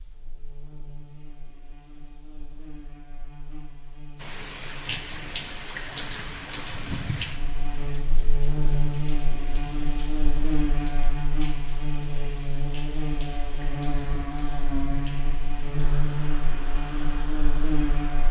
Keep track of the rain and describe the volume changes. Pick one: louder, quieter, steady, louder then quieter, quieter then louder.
quieter.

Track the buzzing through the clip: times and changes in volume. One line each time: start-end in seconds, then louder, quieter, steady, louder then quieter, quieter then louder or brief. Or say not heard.
0.0-18.2 louder.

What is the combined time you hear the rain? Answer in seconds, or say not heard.
14 s.